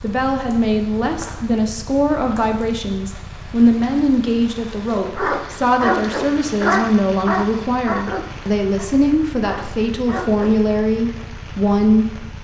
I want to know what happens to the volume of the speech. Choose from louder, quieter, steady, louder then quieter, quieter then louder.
steady.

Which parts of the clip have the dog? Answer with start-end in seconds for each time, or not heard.
5.2-10.6.